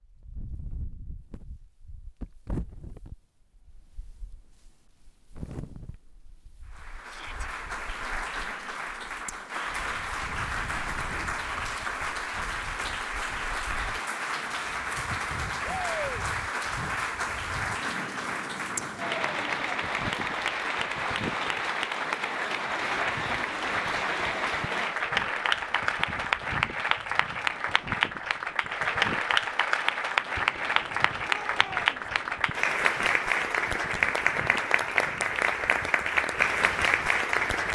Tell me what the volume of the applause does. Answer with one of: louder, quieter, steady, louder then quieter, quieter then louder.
louder.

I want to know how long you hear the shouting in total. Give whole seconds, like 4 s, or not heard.
2 s.